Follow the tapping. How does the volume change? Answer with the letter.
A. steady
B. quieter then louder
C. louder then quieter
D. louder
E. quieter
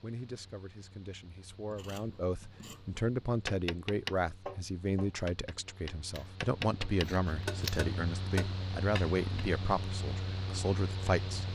B.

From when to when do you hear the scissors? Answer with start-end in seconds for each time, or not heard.
1.7-3.0, 7.0-7.8.